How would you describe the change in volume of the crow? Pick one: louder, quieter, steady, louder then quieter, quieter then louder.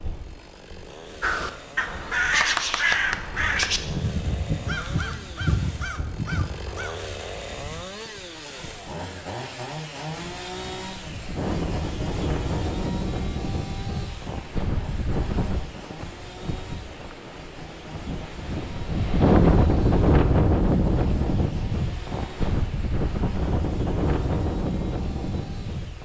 quieter.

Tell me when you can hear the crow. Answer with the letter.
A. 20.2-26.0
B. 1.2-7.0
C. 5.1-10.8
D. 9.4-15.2
B.